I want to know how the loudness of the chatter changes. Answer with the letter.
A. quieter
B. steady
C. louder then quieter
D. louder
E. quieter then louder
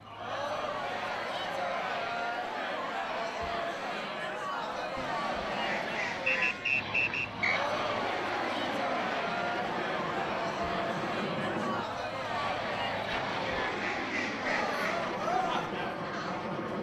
B.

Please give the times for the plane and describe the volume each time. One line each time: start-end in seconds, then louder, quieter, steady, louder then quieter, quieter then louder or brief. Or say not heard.
0.0-16.7 louder.